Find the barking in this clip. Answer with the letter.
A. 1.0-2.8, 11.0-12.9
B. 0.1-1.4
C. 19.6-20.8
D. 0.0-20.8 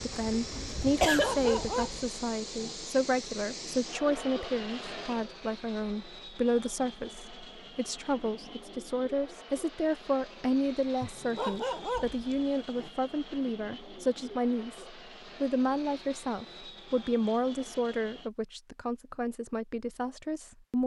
A.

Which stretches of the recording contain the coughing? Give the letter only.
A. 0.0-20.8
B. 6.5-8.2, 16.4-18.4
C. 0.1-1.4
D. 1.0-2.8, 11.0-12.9
C.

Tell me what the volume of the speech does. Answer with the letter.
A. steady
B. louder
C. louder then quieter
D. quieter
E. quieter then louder
A.